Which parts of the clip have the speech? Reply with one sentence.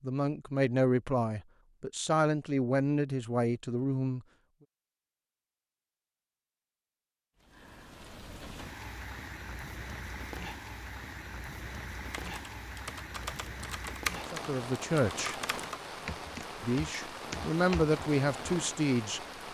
You can hear the speech from 0.0 to 4.2 s, from 14.3 to 15.3 s and from 16.6 to 19.2 s.